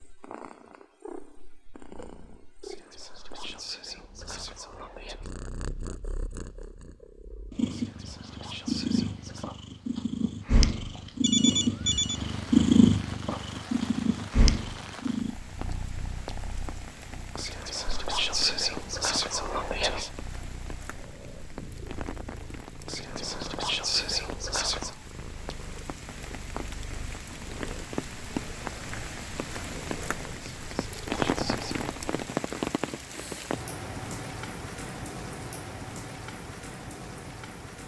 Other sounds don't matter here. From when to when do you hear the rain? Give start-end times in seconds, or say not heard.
12.2-37.8.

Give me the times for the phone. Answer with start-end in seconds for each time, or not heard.
11.2-12.2.